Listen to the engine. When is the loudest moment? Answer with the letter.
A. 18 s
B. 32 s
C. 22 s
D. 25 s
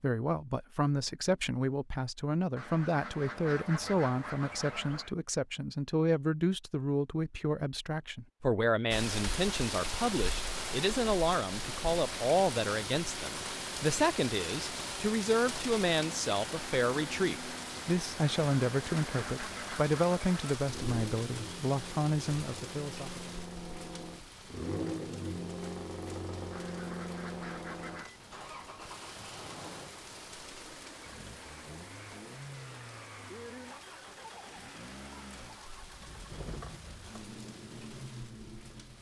D.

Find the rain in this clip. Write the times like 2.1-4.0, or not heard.
8.9-38.9.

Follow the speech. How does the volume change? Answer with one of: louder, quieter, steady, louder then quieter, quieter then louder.
steady.